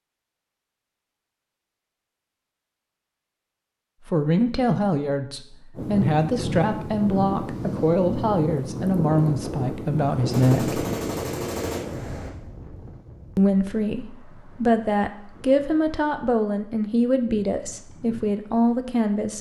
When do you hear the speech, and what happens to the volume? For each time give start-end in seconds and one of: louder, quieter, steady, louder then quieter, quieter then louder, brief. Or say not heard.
4.0-10.8 steady
13.3-19.3 steady.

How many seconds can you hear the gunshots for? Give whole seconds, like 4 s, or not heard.
2 s.